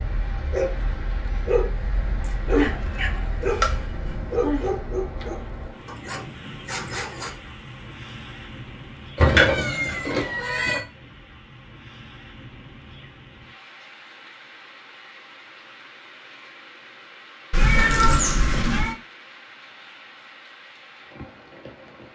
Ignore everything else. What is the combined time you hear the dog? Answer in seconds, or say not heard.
7 s.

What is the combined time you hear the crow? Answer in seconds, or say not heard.
not heard.